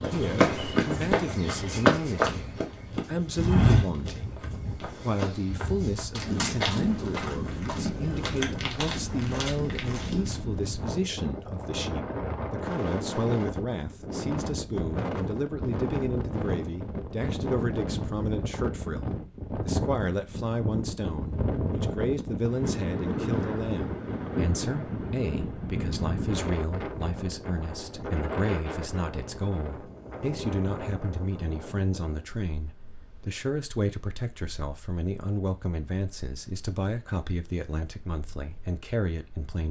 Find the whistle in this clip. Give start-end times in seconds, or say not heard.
not heard.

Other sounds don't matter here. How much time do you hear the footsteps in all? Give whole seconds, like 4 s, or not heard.
10 s.